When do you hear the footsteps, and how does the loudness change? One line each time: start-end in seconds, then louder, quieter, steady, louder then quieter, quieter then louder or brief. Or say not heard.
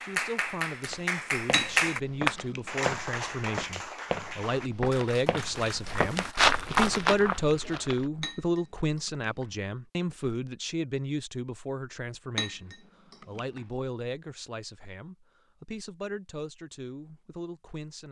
0.8-8.1 louder.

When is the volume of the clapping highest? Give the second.
2 s.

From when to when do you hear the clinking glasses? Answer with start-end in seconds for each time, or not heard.
1.5-2.8, 8.2-9.4, 12.3-13.6.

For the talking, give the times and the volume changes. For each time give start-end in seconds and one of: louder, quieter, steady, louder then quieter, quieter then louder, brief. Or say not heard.
0.0-18.0 louder then quieter.